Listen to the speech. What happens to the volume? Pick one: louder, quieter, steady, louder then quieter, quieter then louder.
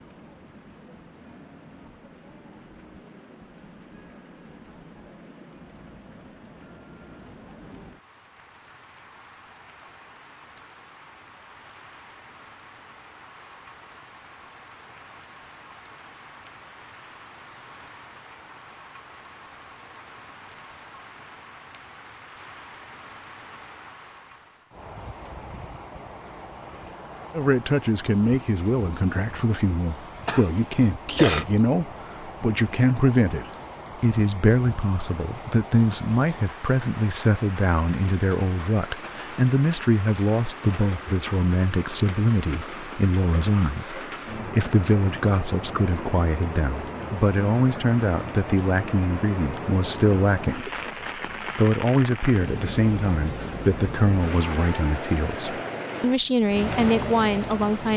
steady.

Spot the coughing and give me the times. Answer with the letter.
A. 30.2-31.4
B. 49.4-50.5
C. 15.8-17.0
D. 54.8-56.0
A.